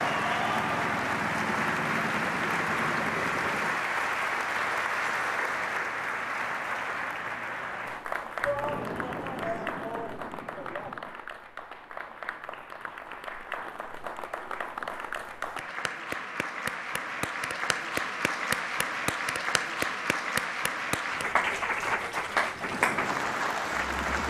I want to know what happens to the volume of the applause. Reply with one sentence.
The loudness of the applause goes down, then up.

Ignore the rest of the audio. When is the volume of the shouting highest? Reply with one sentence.
The loudest moment of the shouting is at 9 seconds.